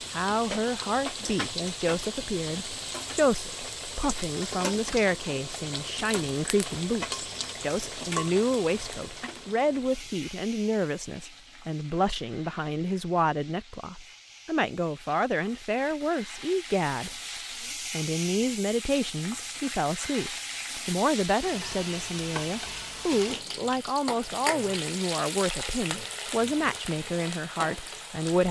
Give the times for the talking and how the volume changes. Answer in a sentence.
The talking can be heard from 0.1 to 17.1 s, at a steady volume; and from 17.9 to 28.4 s, at a steady volume.